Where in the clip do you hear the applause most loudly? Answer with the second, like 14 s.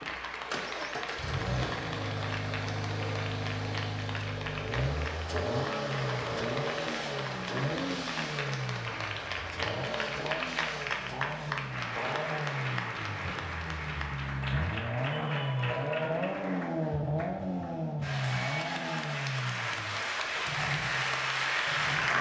22 s.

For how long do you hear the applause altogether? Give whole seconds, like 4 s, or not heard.
22 s.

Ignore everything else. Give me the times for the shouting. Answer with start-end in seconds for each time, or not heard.
15.1-16.1.